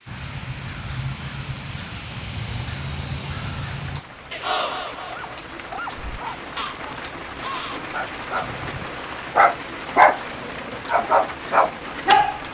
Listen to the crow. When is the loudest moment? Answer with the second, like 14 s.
5 s.